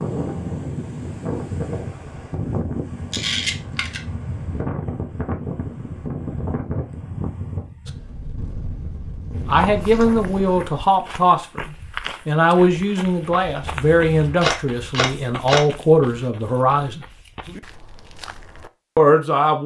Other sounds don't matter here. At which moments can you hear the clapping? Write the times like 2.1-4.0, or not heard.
not heard.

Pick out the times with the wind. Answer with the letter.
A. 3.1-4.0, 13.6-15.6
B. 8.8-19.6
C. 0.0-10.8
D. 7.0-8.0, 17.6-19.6
C.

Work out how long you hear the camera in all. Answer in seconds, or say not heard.
3 s.